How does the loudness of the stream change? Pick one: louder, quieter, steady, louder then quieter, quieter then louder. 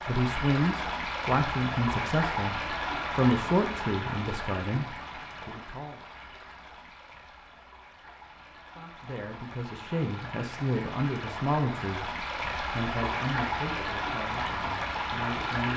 quieter then louder.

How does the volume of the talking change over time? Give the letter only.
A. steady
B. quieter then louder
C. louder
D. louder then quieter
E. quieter
E.